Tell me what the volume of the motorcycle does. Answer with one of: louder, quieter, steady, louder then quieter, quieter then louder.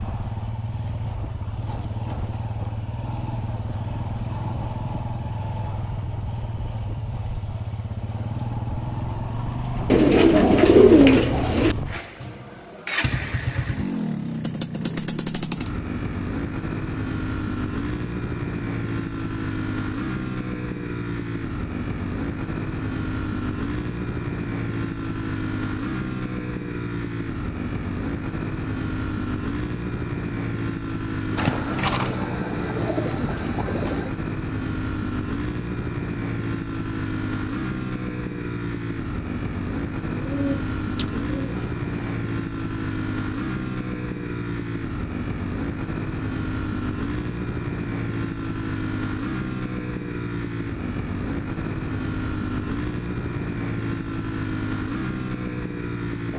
steady.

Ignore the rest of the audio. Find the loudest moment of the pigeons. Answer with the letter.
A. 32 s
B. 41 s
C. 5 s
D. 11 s
D.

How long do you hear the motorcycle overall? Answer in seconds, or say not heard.
56 s.